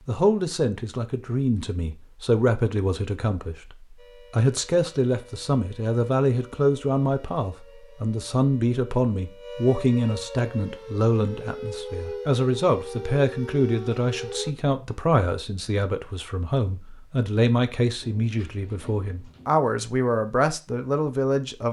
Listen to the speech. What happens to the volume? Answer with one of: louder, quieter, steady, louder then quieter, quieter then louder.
steady.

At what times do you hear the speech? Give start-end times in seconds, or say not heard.
0.1-21.6.